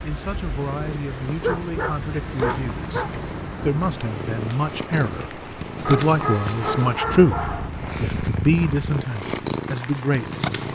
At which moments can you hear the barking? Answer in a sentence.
The barking can be heard from 1.4 to 3.1 s and from 5.8 to 7.7 s.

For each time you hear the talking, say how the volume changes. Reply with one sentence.
The talking can be heard from 0.0 to 10.4 s, getting louder.